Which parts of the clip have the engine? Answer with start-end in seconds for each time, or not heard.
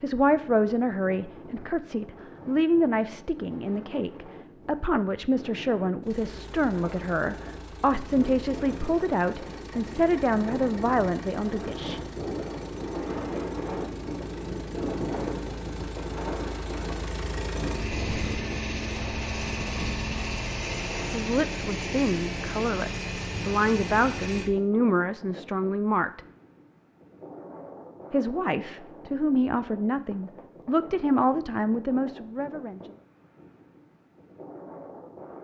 6.0-24.5.